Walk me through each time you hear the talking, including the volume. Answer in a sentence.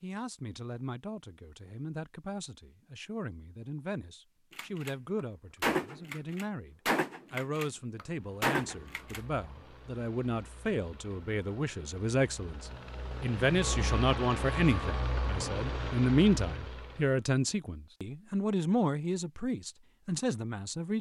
The talking can be heard from 0.0 to 20.9 s, getting louder.